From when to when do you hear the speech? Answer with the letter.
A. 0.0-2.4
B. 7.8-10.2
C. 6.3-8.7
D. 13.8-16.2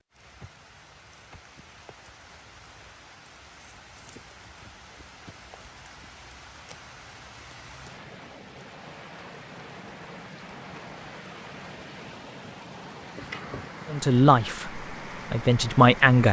D.